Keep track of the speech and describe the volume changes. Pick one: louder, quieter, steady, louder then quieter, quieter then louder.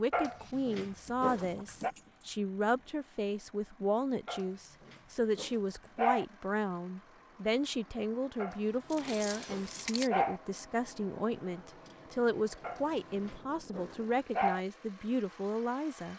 steady.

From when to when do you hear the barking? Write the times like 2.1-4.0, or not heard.
0.1-1.9, 4.2-6.2, 8.3-10.4, 12.6-14.6.